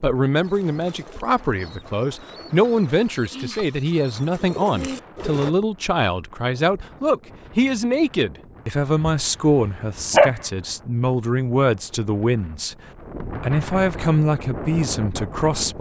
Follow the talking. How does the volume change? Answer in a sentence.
The loudness of the talking stays about the same.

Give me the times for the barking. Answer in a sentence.
The barking can be heard from 9.0 to 10.3 s.